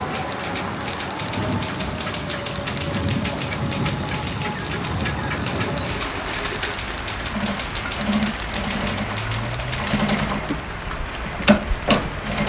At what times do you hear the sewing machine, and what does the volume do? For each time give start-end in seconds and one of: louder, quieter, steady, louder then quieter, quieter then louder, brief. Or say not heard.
0.0-12.4 louder.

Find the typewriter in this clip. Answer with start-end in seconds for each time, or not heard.
0.1-10.0.